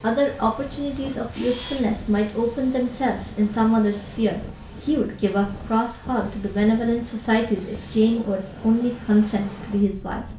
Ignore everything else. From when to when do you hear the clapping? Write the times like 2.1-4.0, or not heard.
not heard.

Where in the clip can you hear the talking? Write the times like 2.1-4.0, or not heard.
0.0-10.2.